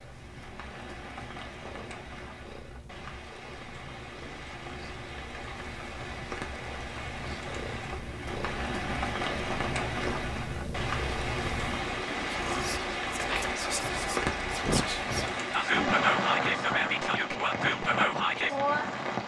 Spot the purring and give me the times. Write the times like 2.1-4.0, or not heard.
0.0-15.0.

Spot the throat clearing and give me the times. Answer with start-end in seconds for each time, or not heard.
not heard.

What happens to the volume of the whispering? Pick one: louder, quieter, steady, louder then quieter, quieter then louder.
louder.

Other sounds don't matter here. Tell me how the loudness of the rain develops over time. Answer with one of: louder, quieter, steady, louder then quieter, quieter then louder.
louder.